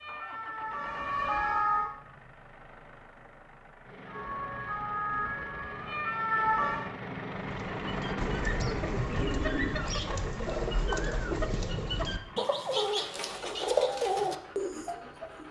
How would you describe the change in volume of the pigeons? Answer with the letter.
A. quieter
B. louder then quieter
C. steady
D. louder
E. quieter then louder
D.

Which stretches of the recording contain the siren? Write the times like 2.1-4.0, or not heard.
0.0-1.9, 4.0-6.9.